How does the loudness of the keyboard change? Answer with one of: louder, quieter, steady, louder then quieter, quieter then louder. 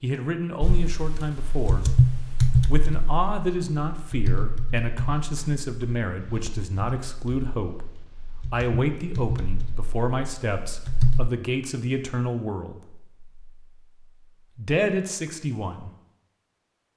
quieter then louder.